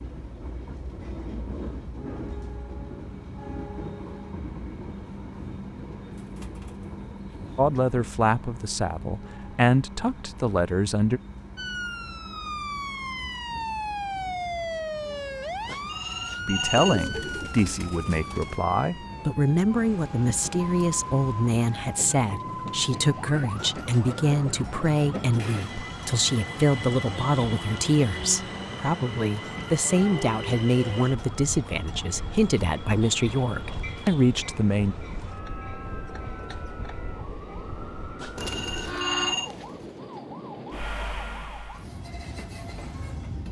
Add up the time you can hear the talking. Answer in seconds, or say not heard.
22 s.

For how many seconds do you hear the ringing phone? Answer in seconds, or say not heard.
3 s.